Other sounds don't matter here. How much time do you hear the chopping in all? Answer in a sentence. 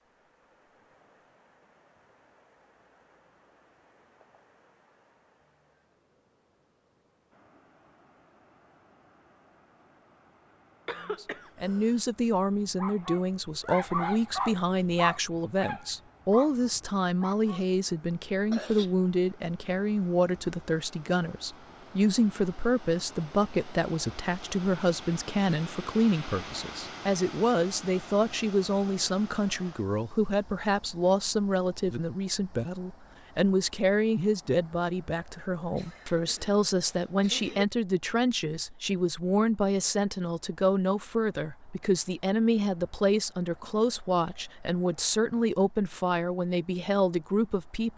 The chopping can't be heard in this clip.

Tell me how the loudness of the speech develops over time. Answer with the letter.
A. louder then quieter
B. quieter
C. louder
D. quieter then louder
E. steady
E.